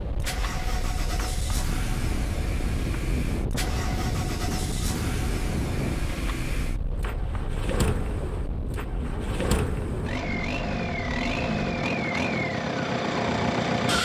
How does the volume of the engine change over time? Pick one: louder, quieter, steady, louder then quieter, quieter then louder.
louder.